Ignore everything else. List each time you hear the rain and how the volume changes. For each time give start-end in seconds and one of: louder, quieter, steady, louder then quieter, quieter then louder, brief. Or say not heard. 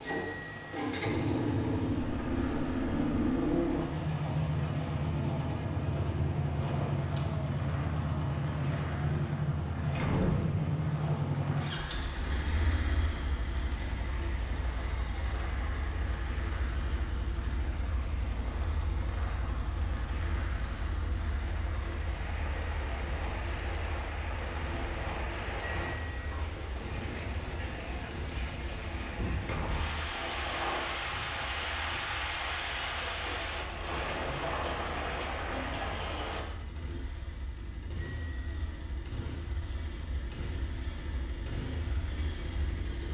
0.0-36.5 louder.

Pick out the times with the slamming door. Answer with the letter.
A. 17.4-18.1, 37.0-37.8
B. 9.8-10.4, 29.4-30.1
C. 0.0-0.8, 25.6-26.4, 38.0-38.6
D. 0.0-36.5
B.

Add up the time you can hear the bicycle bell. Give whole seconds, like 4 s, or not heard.
2 s.